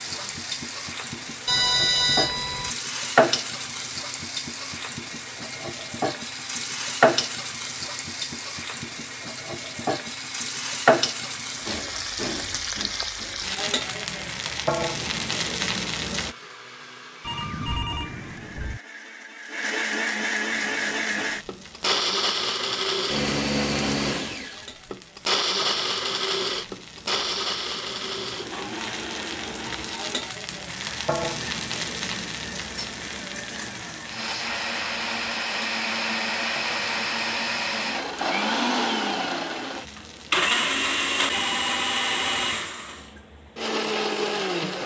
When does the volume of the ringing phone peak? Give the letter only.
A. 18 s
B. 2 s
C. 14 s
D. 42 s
B.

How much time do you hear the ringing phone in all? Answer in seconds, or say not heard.
4 s.